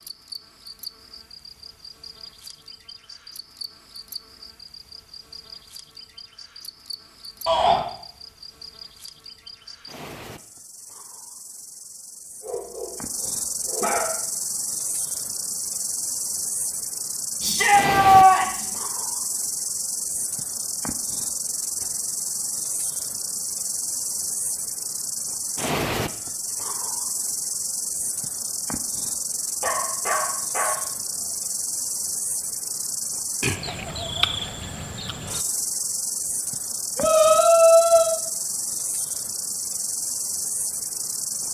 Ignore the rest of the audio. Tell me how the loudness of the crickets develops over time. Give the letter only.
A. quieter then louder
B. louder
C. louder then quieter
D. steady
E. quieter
B.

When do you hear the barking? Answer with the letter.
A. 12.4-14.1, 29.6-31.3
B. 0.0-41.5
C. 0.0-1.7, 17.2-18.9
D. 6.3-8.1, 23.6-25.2
A.